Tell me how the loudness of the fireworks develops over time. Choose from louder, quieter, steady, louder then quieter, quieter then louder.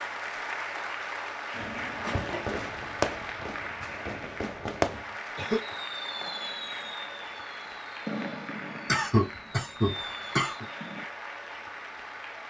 quieter.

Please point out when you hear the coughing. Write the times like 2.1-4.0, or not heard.
1.5-2.5, 4.9-5.8, 8.8-10.7.